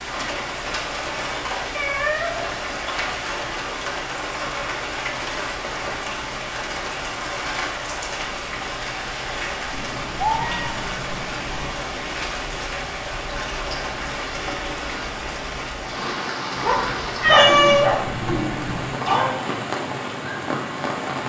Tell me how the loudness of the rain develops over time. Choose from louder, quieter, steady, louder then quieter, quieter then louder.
steady.